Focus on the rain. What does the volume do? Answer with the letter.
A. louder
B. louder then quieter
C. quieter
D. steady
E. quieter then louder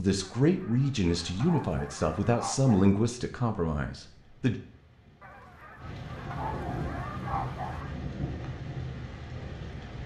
A.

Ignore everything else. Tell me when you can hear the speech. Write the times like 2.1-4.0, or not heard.
0.0-4.5.